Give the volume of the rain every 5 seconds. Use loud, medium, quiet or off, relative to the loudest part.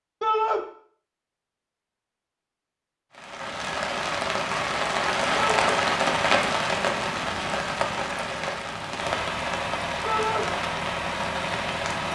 loud, loud, medium.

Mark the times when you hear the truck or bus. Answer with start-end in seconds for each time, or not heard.
9.0-12.0.